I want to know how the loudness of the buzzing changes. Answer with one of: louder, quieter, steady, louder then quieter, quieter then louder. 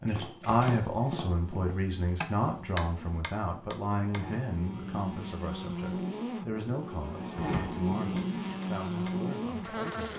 louder.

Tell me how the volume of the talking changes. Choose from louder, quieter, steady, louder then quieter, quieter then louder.
quieter.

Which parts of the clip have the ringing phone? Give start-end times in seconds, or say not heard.
not heard.